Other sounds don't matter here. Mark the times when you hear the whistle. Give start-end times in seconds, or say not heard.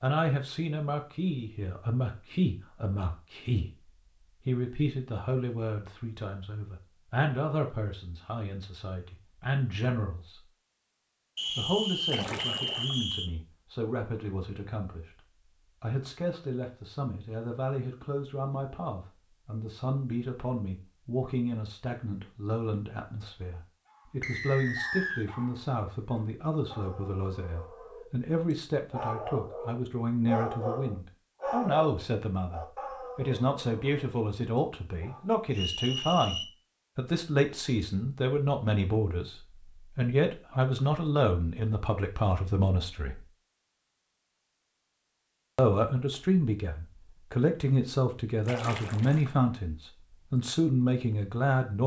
11.3-13.3, 24.2-25.2, 35.5-36.5.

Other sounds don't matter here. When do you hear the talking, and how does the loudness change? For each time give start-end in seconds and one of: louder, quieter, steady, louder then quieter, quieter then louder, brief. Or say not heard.
0.0-10.4 steady
11.6-43.2 louder
45.5-51.8 steady.